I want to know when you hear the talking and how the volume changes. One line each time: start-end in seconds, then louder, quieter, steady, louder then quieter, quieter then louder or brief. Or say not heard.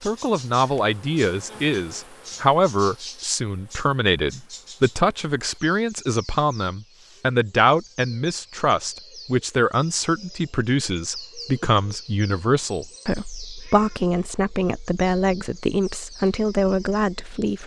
0.1-17.6 steady.